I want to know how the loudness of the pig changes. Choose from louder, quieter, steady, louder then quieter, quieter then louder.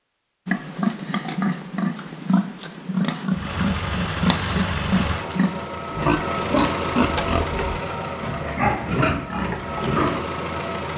steady.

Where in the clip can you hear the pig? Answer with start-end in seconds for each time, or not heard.
0.5-10.2.